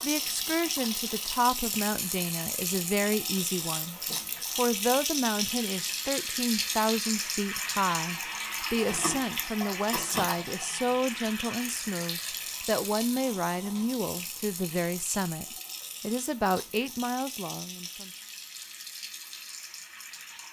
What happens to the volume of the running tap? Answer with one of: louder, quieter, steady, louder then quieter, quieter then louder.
quieter.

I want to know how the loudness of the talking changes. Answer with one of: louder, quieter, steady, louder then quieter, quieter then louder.
steady.